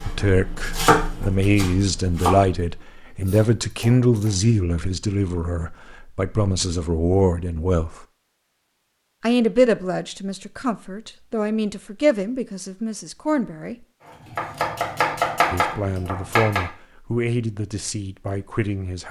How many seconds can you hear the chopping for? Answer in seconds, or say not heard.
7 s.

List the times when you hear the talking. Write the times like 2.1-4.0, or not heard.
0.1-8.1, 9.2-13.8, 15.5-19.0.